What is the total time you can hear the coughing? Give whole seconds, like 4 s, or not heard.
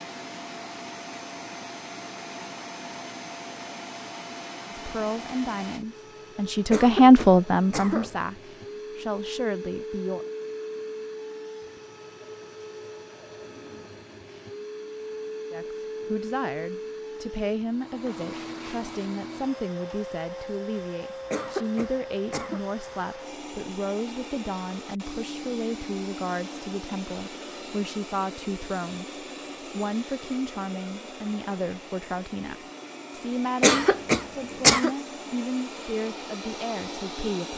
4 s.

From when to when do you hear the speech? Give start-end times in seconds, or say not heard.
4.8-10.2, 15.5-37.5.